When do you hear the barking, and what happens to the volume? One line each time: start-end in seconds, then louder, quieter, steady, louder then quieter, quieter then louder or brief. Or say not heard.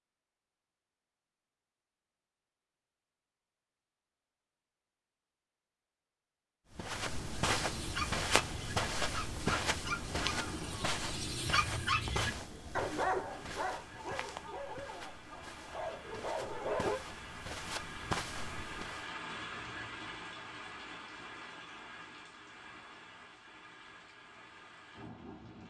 7.5-17.0 louder then quieter.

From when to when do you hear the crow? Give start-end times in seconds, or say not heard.
not heard.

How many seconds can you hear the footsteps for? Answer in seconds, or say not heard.
12 s.